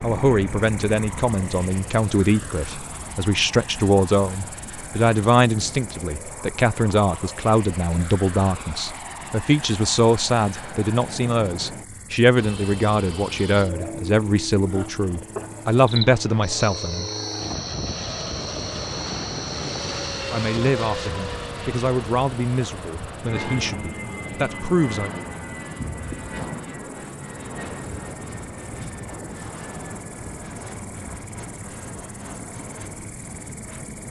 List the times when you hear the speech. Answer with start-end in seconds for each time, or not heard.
0.0-17.1, 20.3-25.1.